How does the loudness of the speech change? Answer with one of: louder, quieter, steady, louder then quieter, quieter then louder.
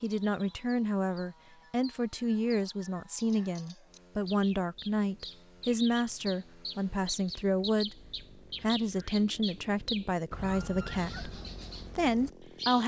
steady.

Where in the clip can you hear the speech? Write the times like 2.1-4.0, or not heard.
0.0-8.0, 8.6-12.8.